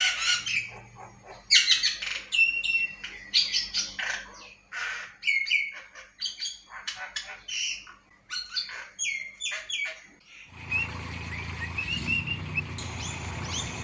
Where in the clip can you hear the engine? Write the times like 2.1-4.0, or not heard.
10.4-13.7.